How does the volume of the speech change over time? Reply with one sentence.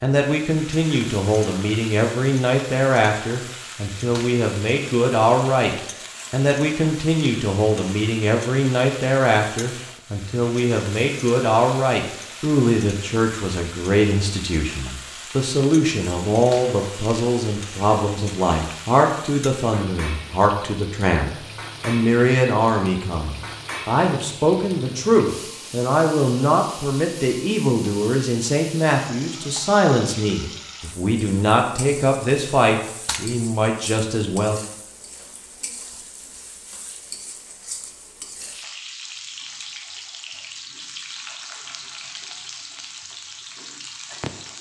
The loudness of the speech stays about the same.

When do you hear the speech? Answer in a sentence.
You can hear the speech from 0.0 to 34.6 s.